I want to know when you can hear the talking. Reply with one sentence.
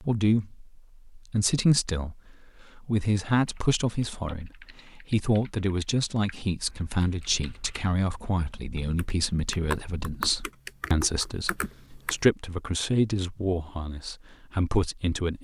You can hear the talking from 0.0 to 15.3 s.